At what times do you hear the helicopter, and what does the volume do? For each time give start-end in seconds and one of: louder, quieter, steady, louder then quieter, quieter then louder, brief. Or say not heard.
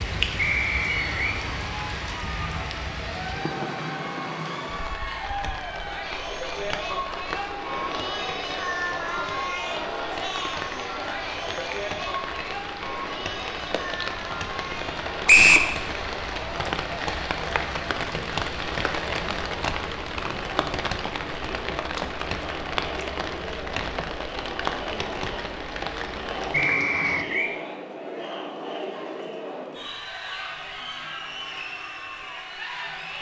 not heard.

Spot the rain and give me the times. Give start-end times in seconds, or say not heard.
0.0-27.2.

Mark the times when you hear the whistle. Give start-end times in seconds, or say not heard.
0.3-1.4, 15.2-15.7, 26.5-27.6.